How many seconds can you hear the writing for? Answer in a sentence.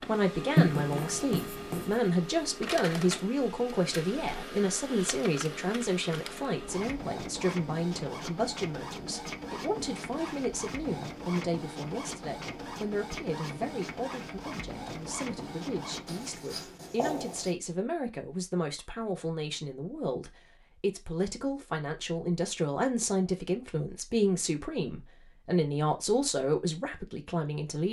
You can hear the writing for 3 seconds altogether.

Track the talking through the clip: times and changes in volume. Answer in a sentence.
You can hear the talking from 0.1 to 27.8 s, getting quieter then louder.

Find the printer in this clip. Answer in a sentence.
The printer can be heard from 0.0 to 16.5 s.